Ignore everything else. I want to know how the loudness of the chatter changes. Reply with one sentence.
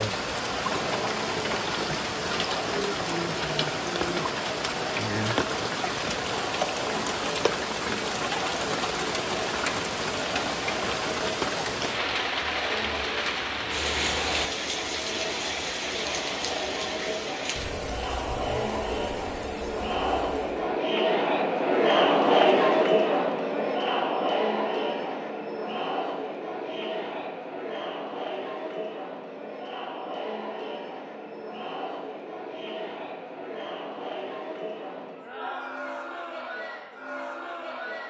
The loudness of the chatter goes up, then down.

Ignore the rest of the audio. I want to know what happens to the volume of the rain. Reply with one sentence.
The volume of the rain goes down.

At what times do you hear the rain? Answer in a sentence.
You can hear the rain from 0.0 to 20.8 s.